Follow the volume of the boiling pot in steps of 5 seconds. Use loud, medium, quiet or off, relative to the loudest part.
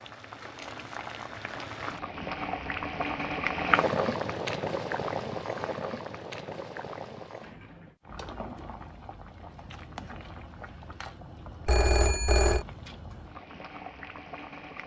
loud, medium, quiet.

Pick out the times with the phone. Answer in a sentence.
You can hear the phone from 11.7 to 12.7 s.